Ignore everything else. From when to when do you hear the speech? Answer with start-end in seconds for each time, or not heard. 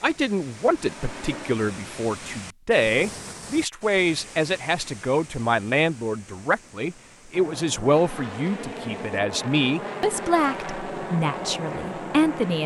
0.0-12.6.